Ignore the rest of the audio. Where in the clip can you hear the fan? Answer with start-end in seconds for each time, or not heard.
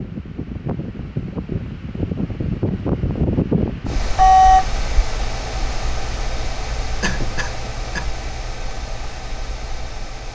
0.0-10.3.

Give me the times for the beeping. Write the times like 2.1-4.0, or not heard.
4.0-4.8.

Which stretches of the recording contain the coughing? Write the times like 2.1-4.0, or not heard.
7.0-8.1.